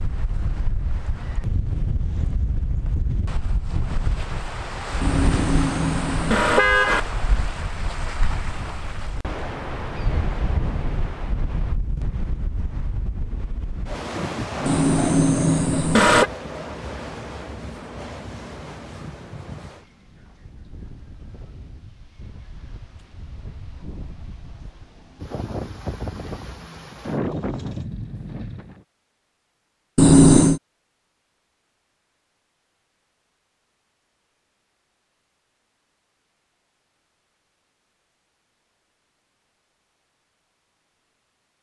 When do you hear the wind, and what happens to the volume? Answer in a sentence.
The wind can be heard from 0.0 to 28.8 s, getting quieter then louder.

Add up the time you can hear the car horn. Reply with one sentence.
The car horn can be heard for 4 seconds in total.